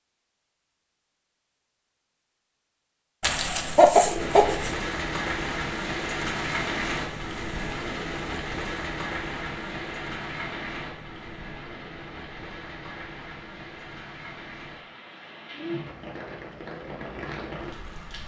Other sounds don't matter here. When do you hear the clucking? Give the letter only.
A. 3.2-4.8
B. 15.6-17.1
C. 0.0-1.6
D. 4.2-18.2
A.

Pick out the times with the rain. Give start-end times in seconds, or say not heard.
4.2-18.2.